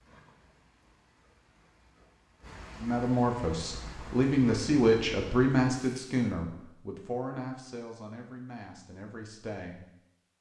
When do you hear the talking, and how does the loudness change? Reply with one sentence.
The talking can be heard from 2.8 to 9.8 s, getting quieter.